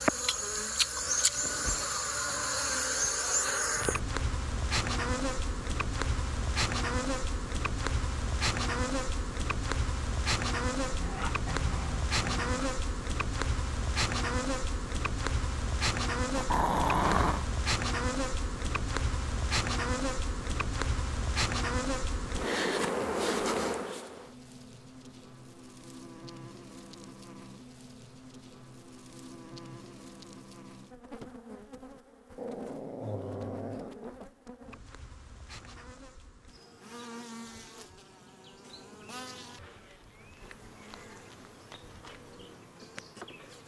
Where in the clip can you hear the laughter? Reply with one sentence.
You can't hear the laughter here.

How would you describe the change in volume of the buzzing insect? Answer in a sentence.
The volume of the buzzing insect goes down.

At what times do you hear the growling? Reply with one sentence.
The growling can be heard from 10.8 to 12.4 s, from 16.4 to 17.4 s and from 32.4 to 34.2 s.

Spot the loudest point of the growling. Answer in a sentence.
The loudest moment of the growling is at 17 seconds.